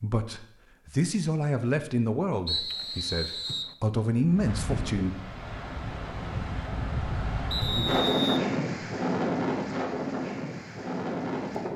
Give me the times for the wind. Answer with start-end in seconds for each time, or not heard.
4.2-11.7.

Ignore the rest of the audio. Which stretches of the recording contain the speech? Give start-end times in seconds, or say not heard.
0.0-5.2.